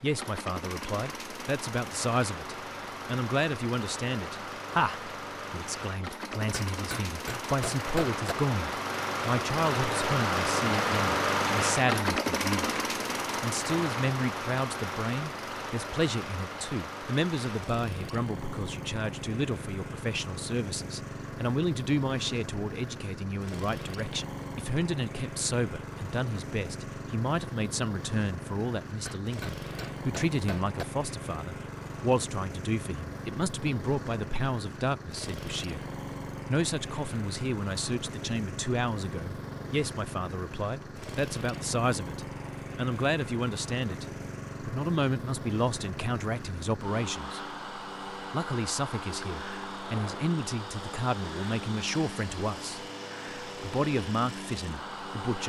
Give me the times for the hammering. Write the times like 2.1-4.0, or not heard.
6.5-8.3, 29.1-30.9.